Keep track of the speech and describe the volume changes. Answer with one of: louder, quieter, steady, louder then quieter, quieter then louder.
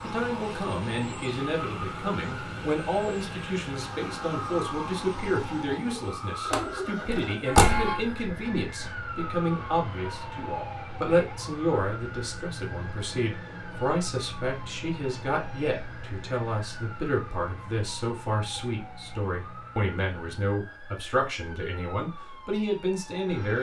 steady.